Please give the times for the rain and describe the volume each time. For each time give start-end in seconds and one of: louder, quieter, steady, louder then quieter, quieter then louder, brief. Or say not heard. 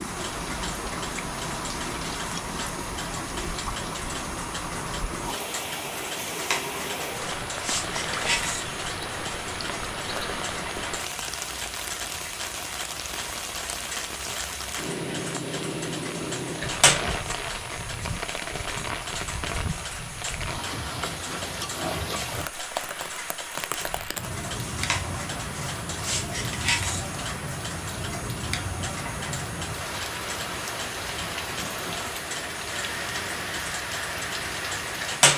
0.0-35.3 steady.